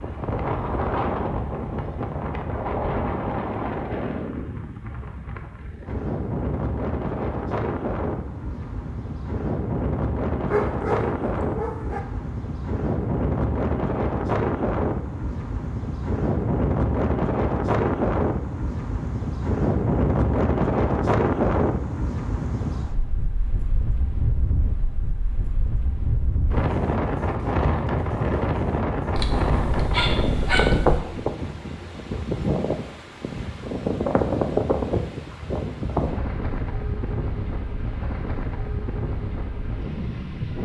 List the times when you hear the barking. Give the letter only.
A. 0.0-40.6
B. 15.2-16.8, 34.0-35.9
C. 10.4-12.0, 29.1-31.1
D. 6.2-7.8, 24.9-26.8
C.